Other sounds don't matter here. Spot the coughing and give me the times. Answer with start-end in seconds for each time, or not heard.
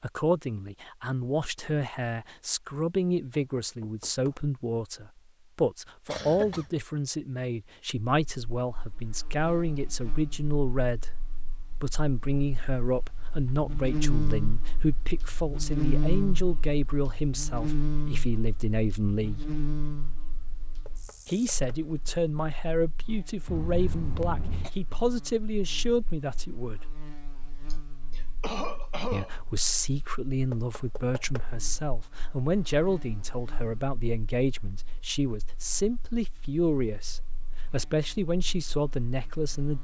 6.0-6.7, 23.4-24.7, 27.7-29.4.